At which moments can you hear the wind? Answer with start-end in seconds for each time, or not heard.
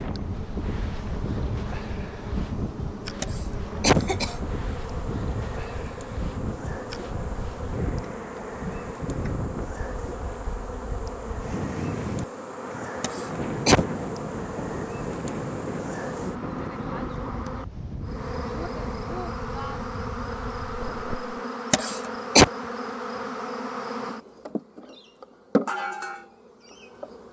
0.0-21.4.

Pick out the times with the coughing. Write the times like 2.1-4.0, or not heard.
3.2-4.4, 13.0-13.8, 21.7-22.4.